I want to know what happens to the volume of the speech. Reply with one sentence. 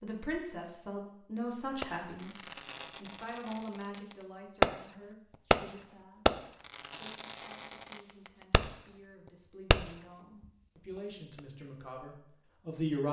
The volume of the speech goes down, then up.